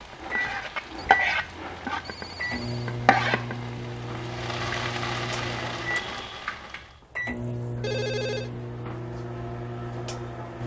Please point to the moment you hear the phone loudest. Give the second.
8 s.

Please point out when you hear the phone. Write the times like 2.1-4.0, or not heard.
0.9-3.0, 7.8-8.5.